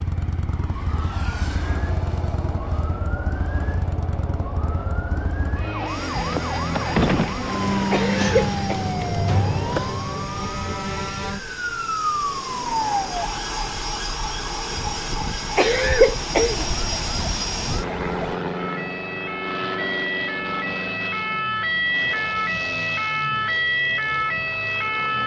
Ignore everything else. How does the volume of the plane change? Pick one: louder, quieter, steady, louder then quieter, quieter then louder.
louder then quieter.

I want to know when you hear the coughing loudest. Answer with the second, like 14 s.
16 s.